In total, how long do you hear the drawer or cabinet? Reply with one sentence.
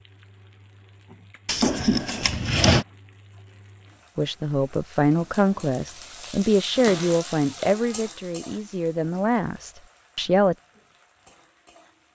You can hear the drawer or cabinet for 3 seconds altogether.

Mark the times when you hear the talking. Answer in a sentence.
The talking can be heard from 4.2 to 10.6 s.